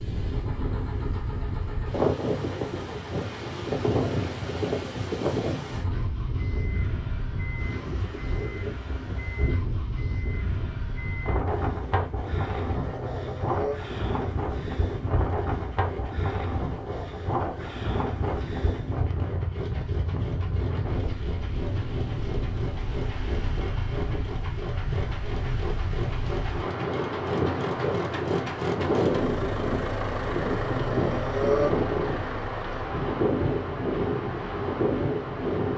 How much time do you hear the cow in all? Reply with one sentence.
The cow can't be heard in this clip.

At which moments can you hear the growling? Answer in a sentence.
The growling can be heard from 12.7 to 13.8 s and from 30.5 to 31.8 s.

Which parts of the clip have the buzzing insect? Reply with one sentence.
You can't hear the buzzing insect here.